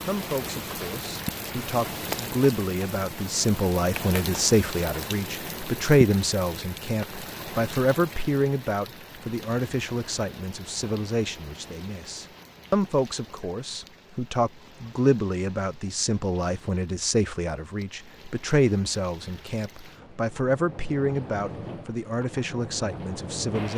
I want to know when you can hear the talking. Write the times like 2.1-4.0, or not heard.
0.1-23.7.